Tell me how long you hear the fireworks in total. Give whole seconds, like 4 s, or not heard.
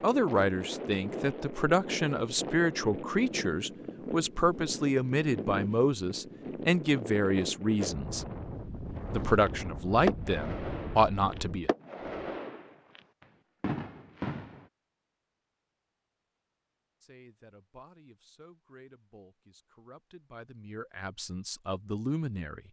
5 s.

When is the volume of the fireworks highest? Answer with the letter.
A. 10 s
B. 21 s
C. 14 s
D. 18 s
A.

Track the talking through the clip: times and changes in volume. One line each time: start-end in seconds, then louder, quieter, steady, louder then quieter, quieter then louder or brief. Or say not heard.
0.0-8.2 steady
9.1-11.7 brief
17.0-22.6 louder.